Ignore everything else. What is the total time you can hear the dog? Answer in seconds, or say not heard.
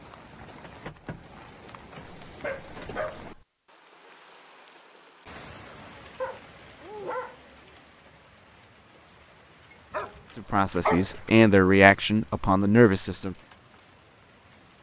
4 s.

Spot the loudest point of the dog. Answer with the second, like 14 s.
11 s.